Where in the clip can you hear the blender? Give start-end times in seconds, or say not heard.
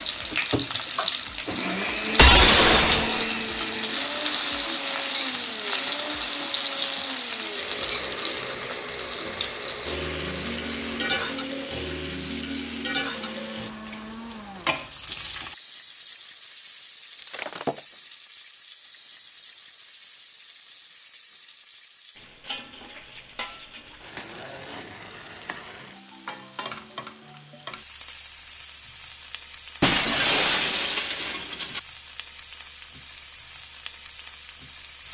0.0-14.8.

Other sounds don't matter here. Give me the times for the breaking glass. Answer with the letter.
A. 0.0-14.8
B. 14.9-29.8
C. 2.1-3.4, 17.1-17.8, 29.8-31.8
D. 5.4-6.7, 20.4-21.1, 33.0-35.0
C.